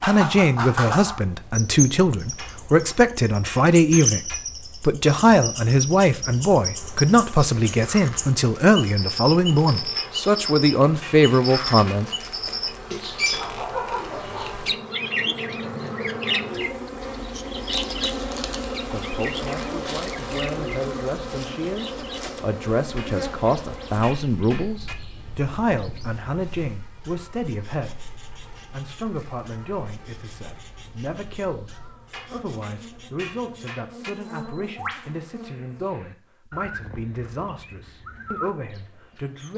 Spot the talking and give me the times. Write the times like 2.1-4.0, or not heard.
0.0-12.1, 18.8-39.5.